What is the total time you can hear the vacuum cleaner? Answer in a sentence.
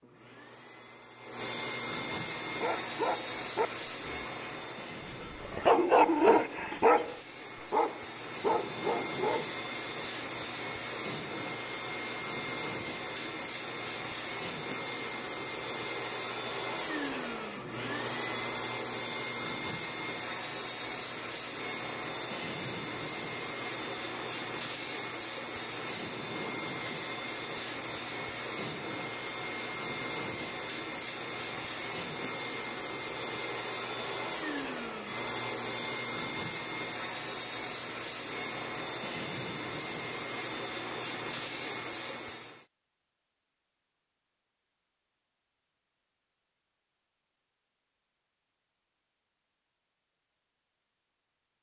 The vacuum cleaner can be heard for 43 seconds in total.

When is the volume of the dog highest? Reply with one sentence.
The loudest moment of the dog is at 6 seconds.